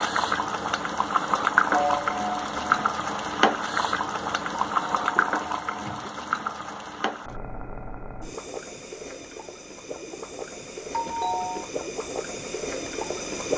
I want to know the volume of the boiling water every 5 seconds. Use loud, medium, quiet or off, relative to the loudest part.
loud, medium, medium.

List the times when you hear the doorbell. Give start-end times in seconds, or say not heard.
1.7-2.9, 4.7-6.1, 10.9-11.7.